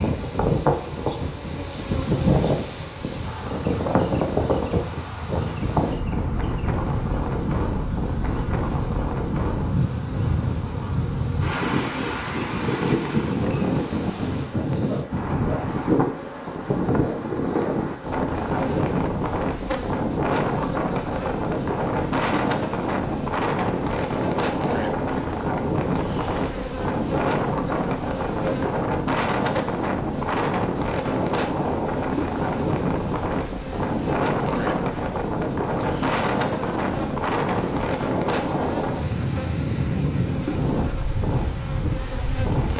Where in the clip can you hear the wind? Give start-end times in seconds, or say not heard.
0.0-42.7.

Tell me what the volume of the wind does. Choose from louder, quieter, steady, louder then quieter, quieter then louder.
steady.